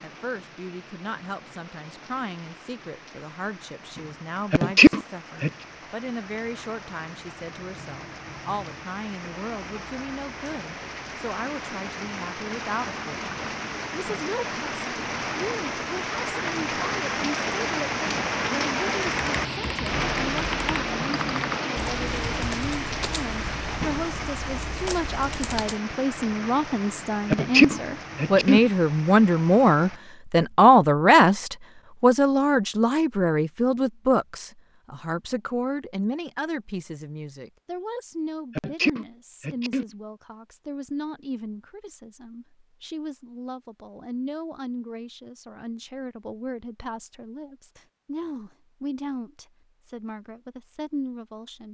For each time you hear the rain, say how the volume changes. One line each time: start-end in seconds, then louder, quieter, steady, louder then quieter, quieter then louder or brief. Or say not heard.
0.0-30.0 louder then quieter.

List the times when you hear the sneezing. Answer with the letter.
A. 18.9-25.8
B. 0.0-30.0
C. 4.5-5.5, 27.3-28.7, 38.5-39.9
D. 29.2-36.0
C.